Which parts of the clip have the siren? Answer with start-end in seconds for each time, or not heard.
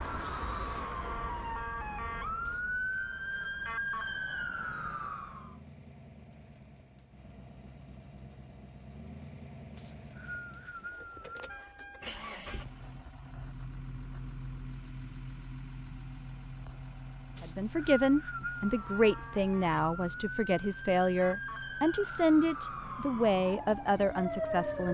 0.0-5.6, 18.6-24.8.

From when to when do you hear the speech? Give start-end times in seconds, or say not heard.
17.4-24.8.